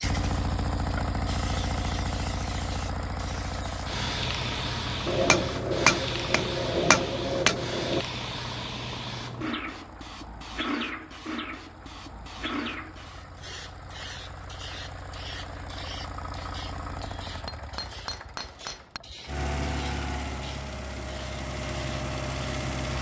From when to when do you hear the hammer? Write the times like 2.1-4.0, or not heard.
5.0-8.1, 17.0-19.0.